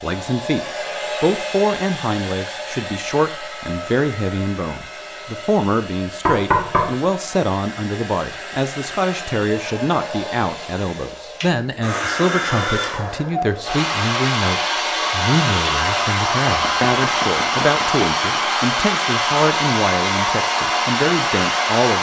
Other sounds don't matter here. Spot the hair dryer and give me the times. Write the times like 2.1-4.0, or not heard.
0.0-21.9.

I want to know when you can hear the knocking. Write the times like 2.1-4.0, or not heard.
6.2-6.9, 16.4-18.4.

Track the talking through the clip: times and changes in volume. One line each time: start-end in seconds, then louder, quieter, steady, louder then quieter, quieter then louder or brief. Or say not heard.
0.0-21.9 steady.